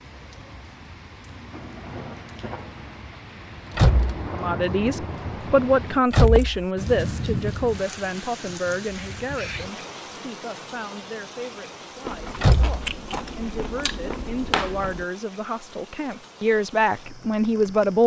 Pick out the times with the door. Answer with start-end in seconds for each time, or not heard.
3.8-4.2, 6.1-6.7, 12.4-12.8.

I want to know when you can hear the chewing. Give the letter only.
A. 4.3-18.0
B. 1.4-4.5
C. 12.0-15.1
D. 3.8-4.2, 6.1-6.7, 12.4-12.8
C.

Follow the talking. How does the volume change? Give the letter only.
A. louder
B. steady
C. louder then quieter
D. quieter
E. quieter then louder
E.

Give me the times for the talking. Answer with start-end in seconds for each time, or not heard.
4.3-18.0.